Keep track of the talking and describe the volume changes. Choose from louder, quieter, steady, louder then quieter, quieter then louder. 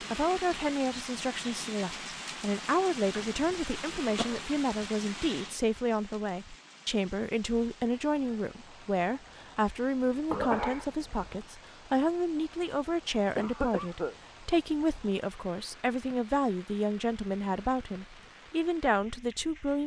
steady.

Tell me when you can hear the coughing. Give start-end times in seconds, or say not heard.
3.1-4.5, 10.3-11.4, 13.3-14.2.